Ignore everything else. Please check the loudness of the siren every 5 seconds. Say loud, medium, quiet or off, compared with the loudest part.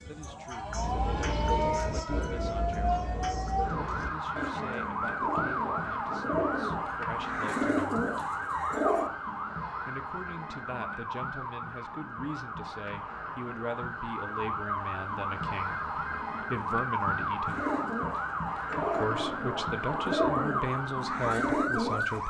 loud, loud, medium, loud, loud.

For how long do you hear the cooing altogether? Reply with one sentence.
The cooing can be heard for 13 seconds in total.